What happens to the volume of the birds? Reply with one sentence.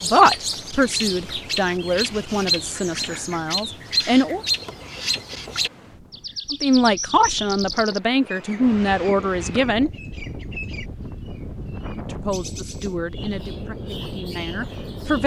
The volume of the birds goes down.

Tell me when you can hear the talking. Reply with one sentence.
You can hear the talking from 0.0 to 4.4 s, from 6.5 to 9.9 s and from 11.9 to 15.2 s.